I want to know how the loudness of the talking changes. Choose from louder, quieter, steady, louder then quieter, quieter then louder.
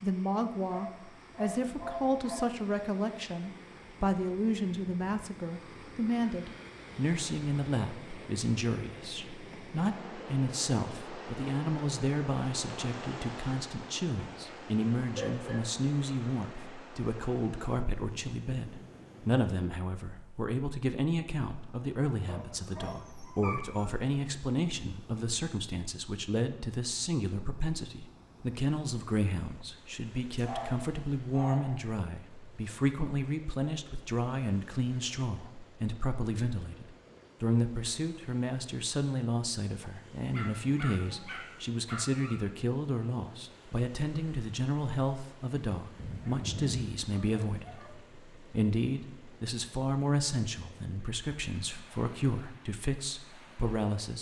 steady.